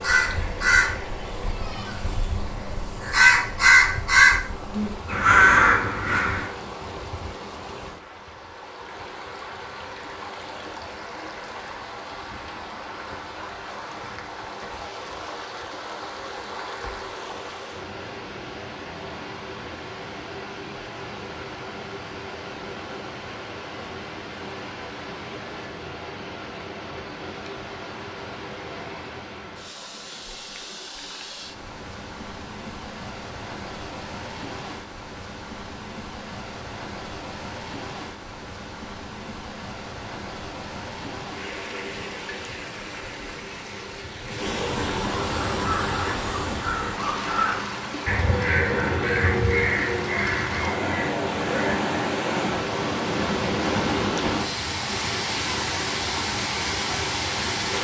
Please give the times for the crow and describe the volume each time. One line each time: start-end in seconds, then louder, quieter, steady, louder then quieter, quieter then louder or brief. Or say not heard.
0.0-6.5 quieter then louder
45.5-51.9 louder then quieter.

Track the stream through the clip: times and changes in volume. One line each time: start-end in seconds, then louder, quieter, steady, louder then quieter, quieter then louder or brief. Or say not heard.
0.0-57.7 louder.